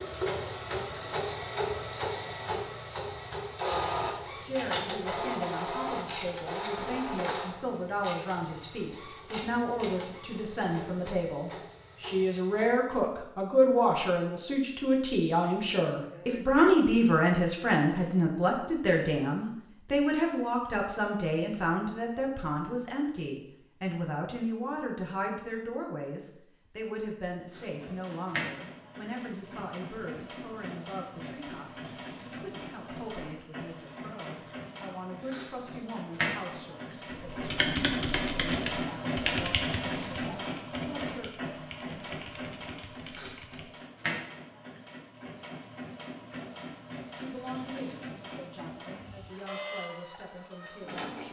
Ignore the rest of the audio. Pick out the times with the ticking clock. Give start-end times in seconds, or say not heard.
not heard.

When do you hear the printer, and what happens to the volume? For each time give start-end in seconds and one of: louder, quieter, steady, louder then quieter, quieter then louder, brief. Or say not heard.
0.0-12.8 quieter
27.5-51.2 louder then quieter.